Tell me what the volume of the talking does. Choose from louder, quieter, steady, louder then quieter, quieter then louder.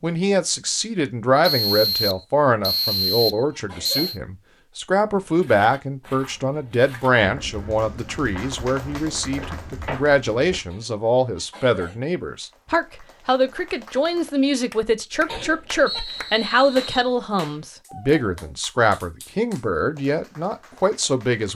steady.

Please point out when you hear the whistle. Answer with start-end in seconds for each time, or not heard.
1.4-4.2, 15.8-17.1.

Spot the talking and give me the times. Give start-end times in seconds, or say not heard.
0.0-21.5.